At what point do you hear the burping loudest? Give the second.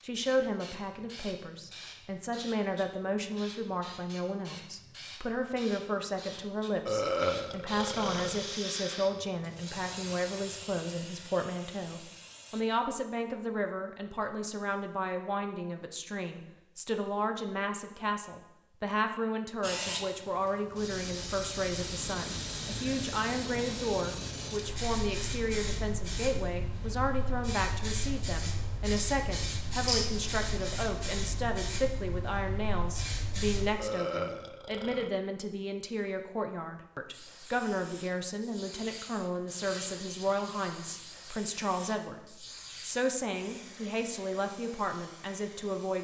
7 s.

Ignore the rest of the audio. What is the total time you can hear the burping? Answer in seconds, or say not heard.
3 s.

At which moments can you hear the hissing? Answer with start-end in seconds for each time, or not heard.
0.0-12.7, 19.6-33.8, 37.1-45.9.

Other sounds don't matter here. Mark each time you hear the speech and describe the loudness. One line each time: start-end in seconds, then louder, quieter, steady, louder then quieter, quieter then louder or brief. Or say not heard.
0.0-45.9 steady.